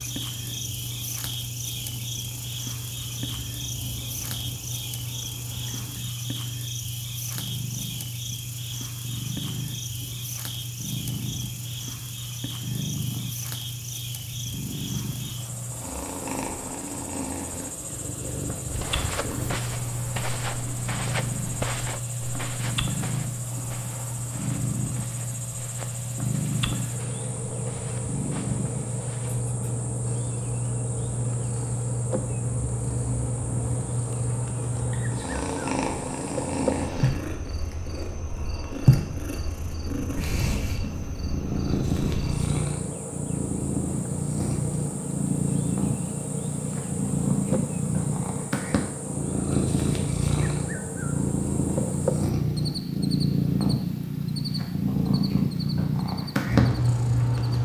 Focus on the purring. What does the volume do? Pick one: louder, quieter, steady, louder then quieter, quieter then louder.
louder.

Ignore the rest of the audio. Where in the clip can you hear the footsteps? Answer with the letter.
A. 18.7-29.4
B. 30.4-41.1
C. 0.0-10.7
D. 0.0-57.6
A.